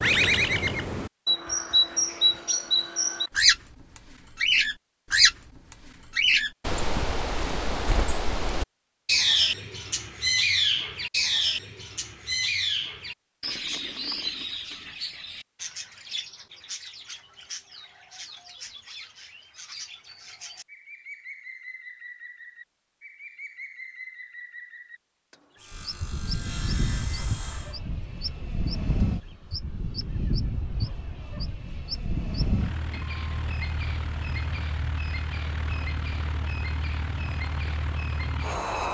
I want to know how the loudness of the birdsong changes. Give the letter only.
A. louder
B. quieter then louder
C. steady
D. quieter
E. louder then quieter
D.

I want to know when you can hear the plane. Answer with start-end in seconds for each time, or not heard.
25.7-38.8.